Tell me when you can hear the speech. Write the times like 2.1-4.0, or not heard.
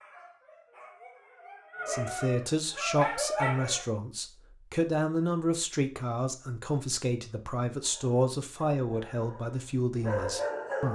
1.9-10.9.